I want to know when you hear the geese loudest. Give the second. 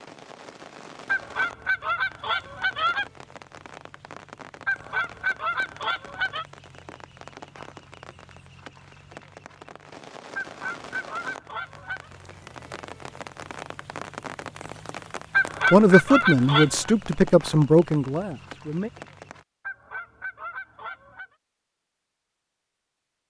16 s.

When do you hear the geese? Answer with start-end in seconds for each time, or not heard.
1.1-3.0, 4.7-6.5, 10.3-12.1, 15.3-16.9, 19.6-21.4.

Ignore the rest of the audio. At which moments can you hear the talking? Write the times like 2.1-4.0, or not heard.
15.7-18.9.